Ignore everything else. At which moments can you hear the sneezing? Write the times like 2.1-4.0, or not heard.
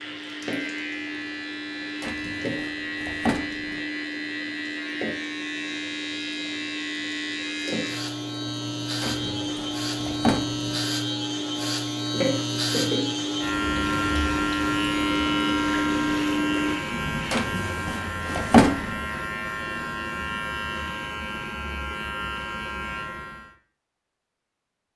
not heard.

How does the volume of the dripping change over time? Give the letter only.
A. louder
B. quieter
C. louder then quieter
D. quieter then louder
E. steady
A.